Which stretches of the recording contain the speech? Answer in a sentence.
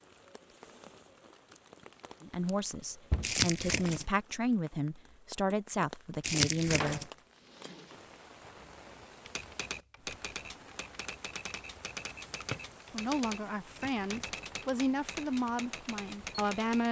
The speech can be heard from 2.2 to 7.0 s and from 12.9 to 16.8 s.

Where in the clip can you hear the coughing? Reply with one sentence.
The coughing can't be heard in this clip.